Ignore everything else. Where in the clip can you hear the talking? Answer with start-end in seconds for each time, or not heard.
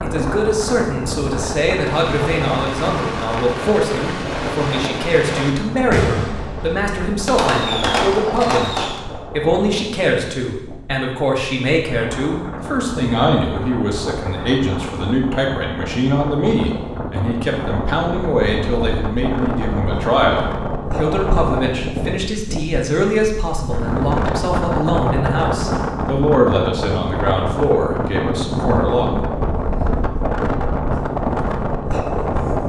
0.0-29.1.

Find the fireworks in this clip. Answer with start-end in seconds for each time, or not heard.
1.8-9.0.